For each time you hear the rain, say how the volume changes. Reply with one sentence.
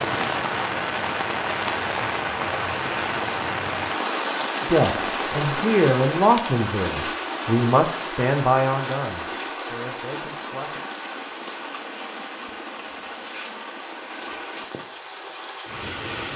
You can hear the rain from 0.0 to 16.3 s, getting quieter.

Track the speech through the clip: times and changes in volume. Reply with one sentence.
You can hear the speech from 4.7 to 10.8 s, getting quieter.